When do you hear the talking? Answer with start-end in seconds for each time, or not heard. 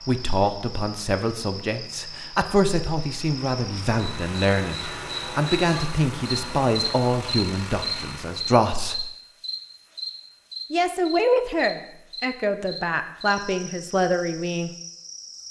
0.1-9.1, 10.7-14.7.